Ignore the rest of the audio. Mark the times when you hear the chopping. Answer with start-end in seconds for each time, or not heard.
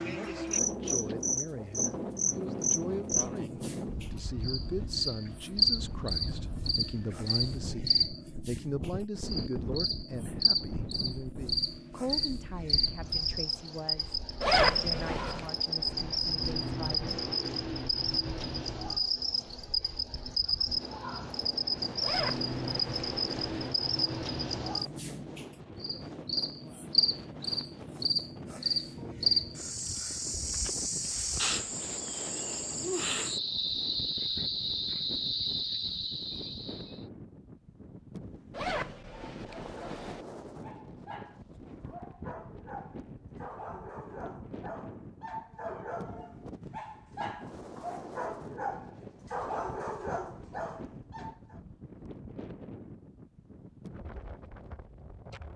not heard.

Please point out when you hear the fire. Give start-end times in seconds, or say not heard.
not heard.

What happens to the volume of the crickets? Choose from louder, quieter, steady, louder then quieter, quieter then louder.
steady.